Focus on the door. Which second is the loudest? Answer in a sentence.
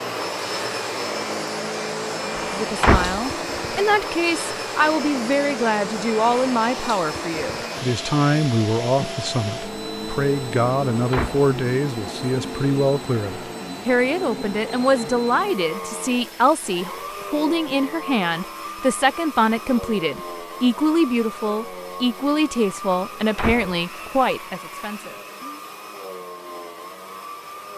The loudest moment of the door is at 3 seconds.